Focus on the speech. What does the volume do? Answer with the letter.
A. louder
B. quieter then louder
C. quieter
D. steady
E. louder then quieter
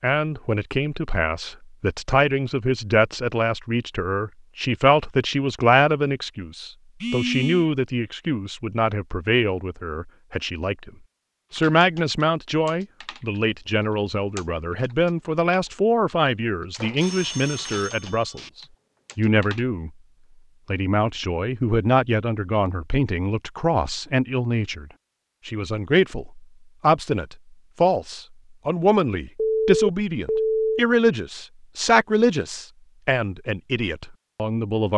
D.